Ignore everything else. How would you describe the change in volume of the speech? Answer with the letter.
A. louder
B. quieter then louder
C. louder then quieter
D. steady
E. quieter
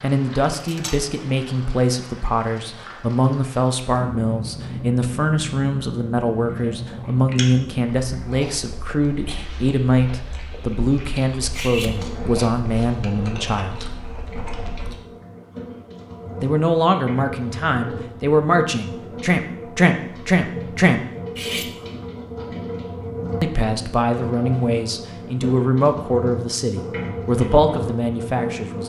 D.